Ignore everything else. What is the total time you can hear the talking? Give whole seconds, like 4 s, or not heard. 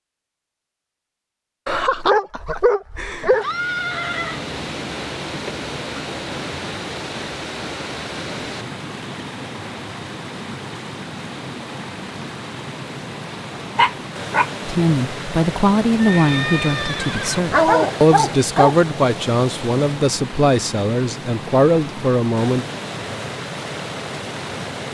8 s.